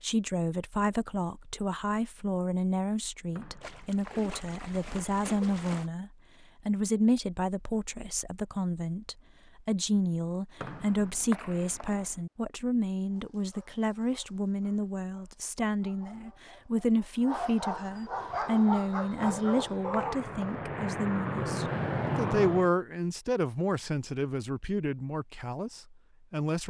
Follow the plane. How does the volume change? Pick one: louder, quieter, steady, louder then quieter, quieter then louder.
louder.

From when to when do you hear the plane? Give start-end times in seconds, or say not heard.
18.1-22.7.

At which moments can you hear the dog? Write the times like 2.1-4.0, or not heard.
13.1-20.2.